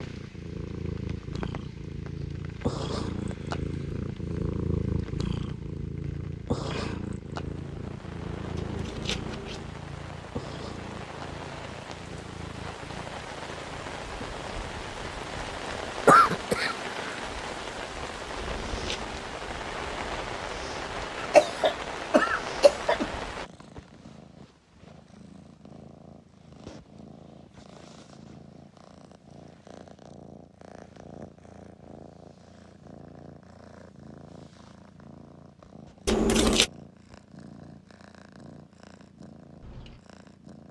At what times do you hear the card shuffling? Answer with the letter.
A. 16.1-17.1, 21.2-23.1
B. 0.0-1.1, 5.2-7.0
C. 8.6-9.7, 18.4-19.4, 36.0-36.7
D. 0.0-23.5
C.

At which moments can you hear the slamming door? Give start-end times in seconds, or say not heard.
not heard.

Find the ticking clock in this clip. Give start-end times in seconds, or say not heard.
not heard.